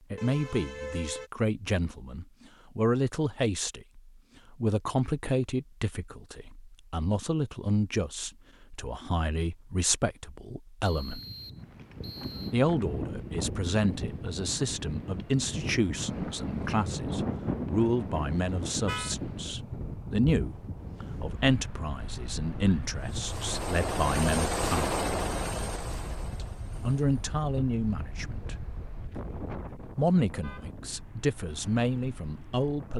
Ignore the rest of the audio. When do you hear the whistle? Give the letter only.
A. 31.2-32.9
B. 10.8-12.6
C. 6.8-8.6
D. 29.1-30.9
B.